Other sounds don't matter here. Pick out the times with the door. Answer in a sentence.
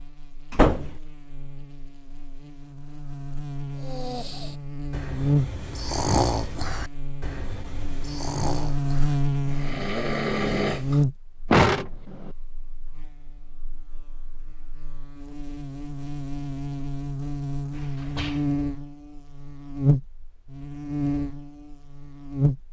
You can hear the door from 0.5 to 0.9 s, from 11.5 to 12.3 s and from 17.7 to 18.4 s.